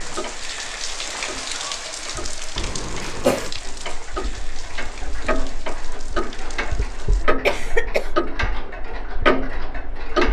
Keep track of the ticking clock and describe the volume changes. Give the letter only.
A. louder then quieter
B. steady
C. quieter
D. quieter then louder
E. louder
E.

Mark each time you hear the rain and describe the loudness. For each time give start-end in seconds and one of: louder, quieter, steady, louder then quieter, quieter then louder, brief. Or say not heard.
0.0-7.3 quieter.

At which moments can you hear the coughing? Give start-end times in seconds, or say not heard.
2.5-3.5, 7.5-8.1.